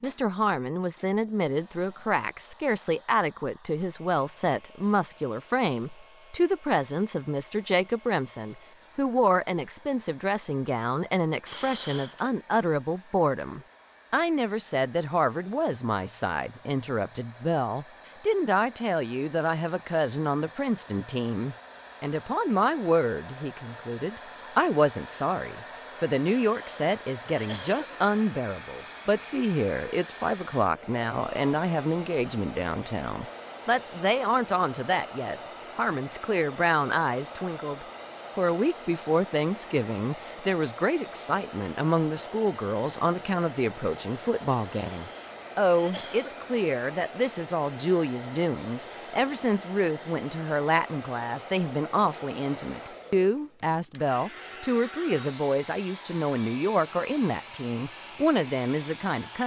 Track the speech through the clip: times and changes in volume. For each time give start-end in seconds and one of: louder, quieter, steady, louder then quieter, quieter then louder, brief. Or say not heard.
0.0-59.4 steady.